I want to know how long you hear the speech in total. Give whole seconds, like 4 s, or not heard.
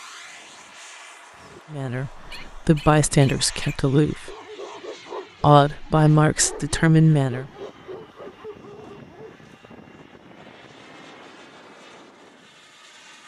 5 s.